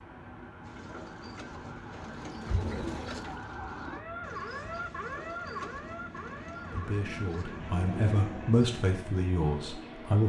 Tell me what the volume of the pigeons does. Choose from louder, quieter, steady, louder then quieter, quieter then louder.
louder then quieter.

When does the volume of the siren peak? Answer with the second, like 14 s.
5 s.